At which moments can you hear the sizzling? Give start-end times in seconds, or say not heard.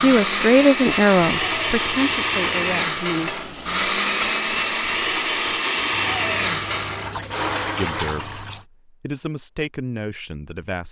3.0-5.7.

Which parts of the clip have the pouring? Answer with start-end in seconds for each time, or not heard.
1.2-2.9, 5.9-8.7.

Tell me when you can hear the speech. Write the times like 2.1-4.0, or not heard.
0.0-3.4, 7.8-10.8.